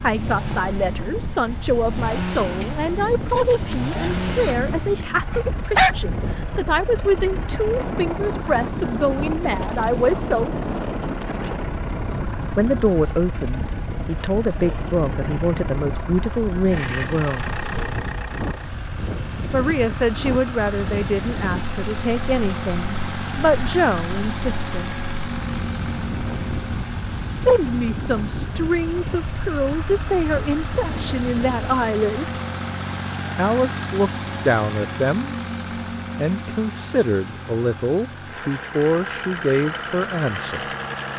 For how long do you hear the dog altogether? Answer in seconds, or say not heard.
3 s.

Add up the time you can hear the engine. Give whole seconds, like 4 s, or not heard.
41 s.